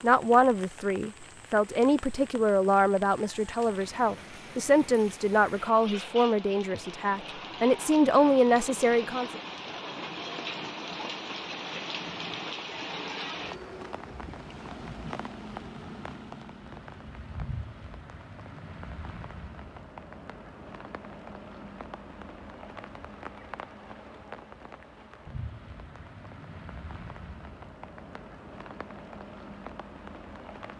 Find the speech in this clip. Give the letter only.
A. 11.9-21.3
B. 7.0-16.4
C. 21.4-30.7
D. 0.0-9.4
D.